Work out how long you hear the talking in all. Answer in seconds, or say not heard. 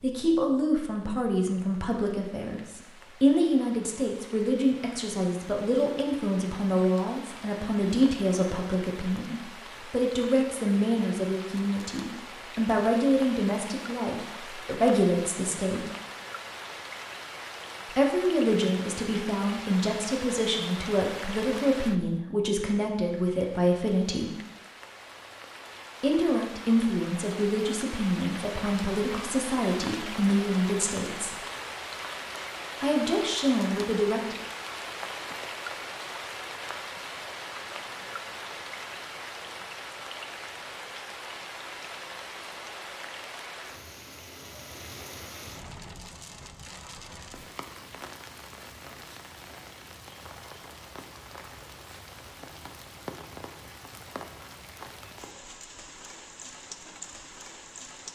29 s.